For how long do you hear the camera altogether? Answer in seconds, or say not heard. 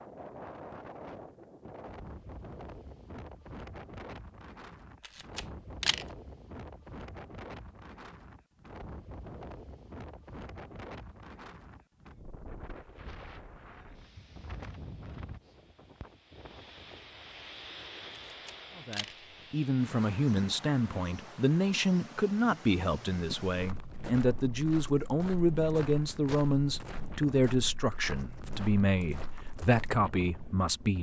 2 s.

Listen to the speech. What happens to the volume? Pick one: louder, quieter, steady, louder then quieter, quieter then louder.
steady.